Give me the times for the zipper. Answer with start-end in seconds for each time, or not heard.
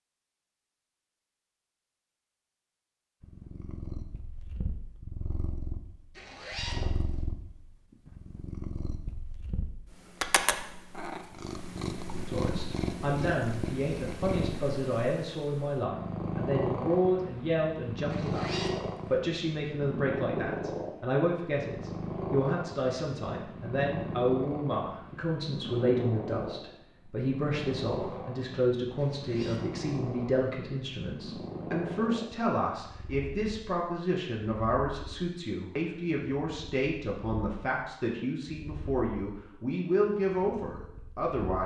6.2-7.2, 18.1-19.2, 28.9-29.9.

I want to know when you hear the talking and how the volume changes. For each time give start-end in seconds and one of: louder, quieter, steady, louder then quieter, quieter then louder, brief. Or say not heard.
12.2-41.6 steady.